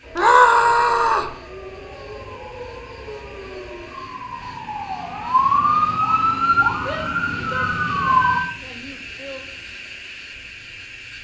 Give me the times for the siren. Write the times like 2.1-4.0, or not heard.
0.0-8.4.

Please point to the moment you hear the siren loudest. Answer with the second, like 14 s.
6 s.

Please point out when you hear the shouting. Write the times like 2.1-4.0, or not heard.
0.1-1.4, 6.8-9.4.